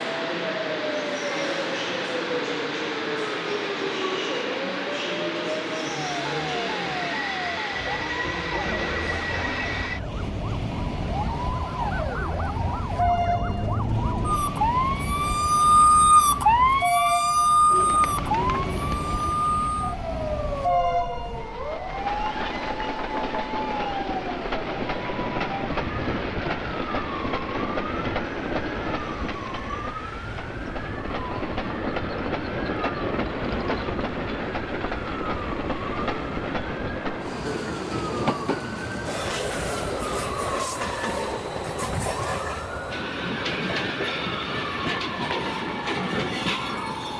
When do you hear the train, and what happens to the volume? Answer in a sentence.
You can hear the train from 0.0 to 47.1 s, at a steady volume.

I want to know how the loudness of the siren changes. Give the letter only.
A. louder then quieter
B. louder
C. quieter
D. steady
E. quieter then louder
A.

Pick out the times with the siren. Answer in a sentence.
The siren can be heard from 0.0 to 47.1 s.